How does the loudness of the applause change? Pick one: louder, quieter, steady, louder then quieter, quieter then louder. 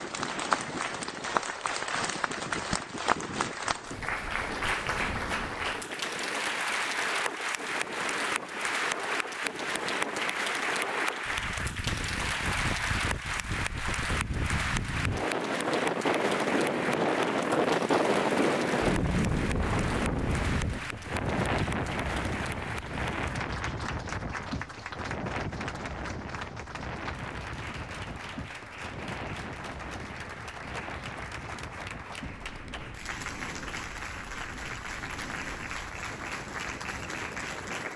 quieter.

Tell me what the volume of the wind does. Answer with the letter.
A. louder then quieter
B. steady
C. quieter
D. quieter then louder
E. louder
A.